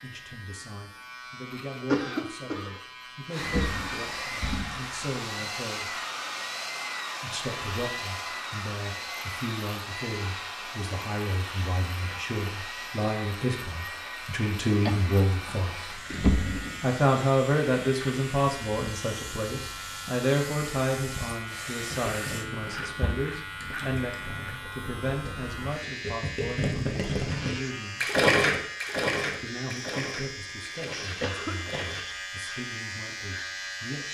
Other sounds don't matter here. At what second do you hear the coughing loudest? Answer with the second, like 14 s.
2 s.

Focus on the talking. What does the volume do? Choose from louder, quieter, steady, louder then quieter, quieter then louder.
louder then quieter.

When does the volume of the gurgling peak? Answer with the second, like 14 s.
28 s.